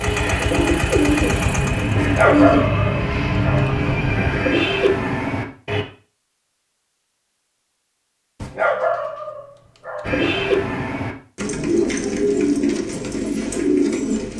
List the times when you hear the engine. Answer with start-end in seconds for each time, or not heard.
0.0-2.0.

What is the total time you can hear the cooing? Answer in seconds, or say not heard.
10 s.